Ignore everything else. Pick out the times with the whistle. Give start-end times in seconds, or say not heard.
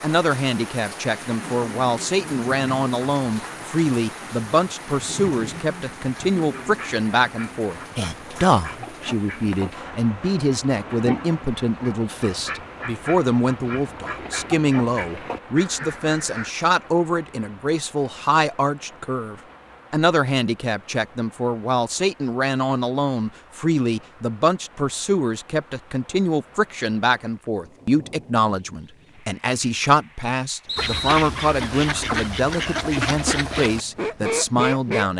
30.6-31.2.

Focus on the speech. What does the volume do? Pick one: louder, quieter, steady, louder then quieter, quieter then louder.
steady.